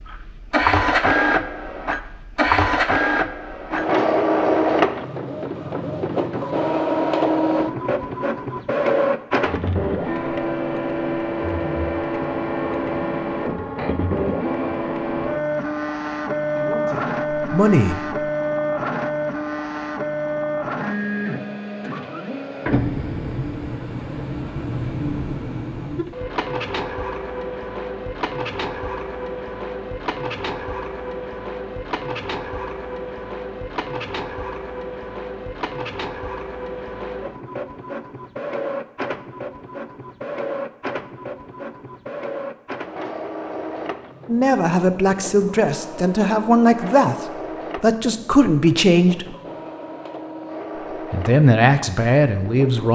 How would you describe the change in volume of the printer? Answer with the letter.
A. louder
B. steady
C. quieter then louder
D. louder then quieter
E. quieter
E.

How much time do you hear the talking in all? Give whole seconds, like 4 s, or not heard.
8 s.